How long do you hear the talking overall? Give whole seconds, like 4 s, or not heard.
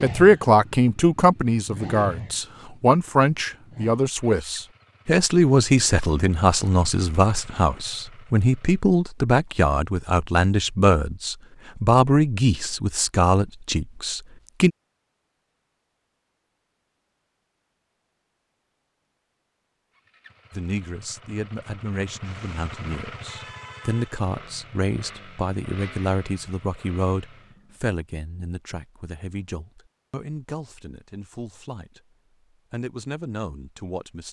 28 s.